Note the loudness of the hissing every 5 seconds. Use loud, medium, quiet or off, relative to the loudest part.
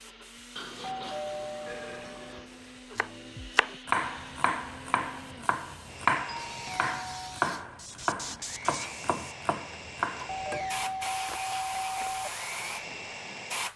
quiet, medium, loud.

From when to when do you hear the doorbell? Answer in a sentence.
You can hear the doorbell from 0.6 to 2.5 s, from 6.5 to 7.5 s and from 10.2 to 12.3 s.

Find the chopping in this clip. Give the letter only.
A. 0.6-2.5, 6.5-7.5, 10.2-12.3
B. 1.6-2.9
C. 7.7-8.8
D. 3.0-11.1
D.